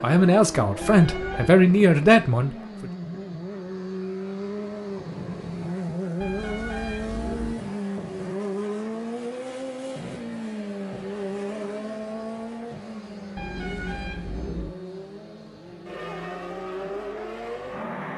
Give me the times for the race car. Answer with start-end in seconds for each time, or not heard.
0.0-18.1.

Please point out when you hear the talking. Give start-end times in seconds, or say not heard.
0.0-2.9.